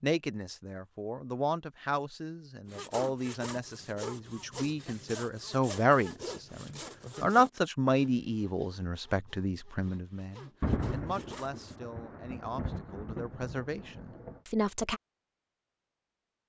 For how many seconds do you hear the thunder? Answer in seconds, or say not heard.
4 s.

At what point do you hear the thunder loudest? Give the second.
11 s.